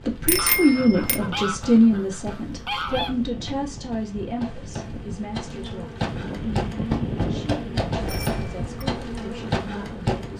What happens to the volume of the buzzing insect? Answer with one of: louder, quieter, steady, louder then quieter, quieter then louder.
louder.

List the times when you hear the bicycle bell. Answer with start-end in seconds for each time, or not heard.
0.2-1.2, 8.1-8.8.